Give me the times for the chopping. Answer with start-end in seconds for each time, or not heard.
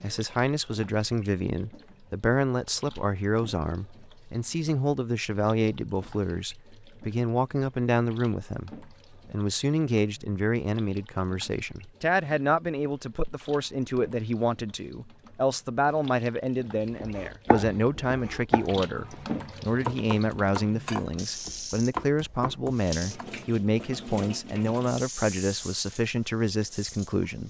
17.0-23.2.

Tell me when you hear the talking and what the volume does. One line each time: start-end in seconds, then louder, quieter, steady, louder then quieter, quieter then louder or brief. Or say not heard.
0.0-27.4 steady.